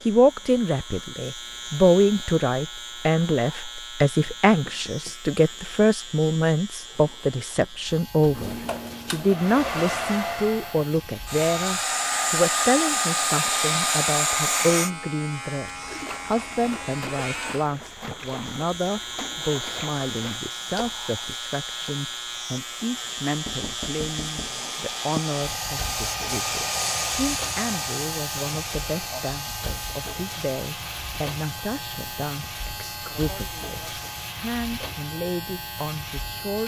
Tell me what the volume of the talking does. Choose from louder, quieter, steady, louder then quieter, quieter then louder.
quieter.